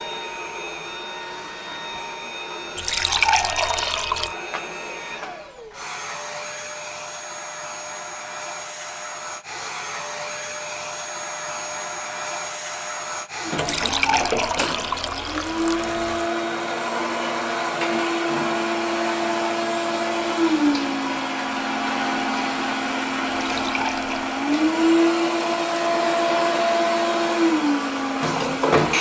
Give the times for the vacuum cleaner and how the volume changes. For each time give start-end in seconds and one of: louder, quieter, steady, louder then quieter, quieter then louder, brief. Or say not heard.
0.0-28.9 louder.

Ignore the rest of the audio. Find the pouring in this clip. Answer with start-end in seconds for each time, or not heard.
2.8-4.3, 13.6-16.2, 23.4-24.4.